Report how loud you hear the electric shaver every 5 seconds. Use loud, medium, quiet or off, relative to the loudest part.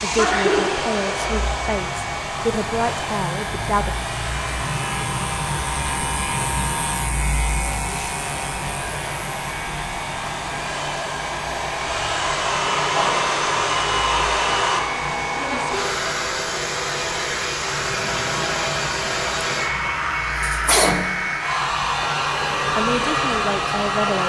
medium, loud, medium, medium, medium.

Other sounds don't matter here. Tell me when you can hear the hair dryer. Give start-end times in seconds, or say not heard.
0.0-24.2.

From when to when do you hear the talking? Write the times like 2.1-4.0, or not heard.
0.0-4.0, 22.7-24.2.